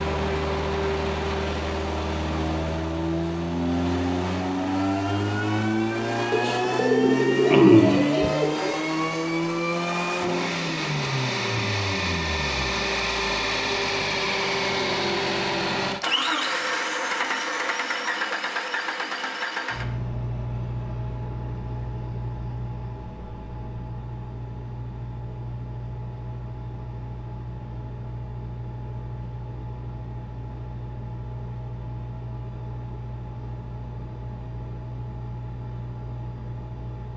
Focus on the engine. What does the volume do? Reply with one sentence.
The volume of the engine goes down.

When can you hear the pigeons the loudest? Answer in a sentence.
The loudest moment of the pigeons is at 8 seconds.